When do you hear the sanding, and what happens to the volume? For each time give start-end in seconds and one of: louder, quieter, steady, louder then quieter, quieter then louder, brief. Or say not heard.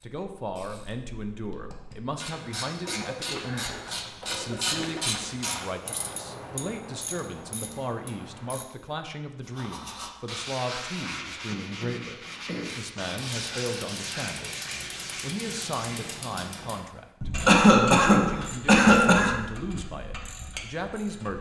9.4-16.2 steady.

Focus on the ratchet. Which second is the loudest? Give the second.
5 s.